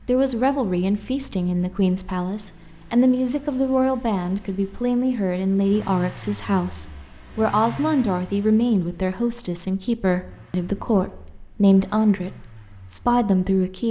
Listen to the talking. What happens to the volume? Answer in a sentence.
The volume of the talking stays about the same.